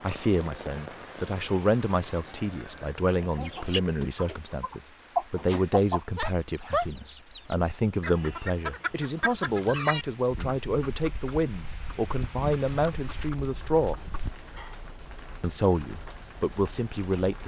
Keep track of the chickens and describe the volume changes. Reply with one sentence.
The loudness of the chickens goes down.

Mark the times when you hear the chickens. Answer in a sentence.
The chickens can be heard from 3.1 to 14.8 s.